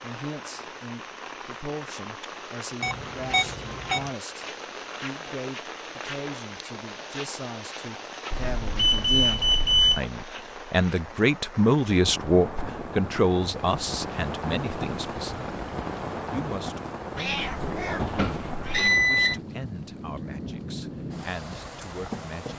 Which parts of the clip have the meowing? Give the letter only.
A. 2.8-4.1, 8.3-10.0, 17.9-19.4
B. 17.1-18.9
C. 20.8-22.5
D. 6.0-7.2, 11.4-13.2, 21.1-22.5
B.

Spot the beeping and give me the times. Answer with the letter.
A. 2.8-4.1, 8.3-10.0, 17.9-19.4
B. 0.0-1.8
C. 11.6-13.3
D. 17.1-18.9
A.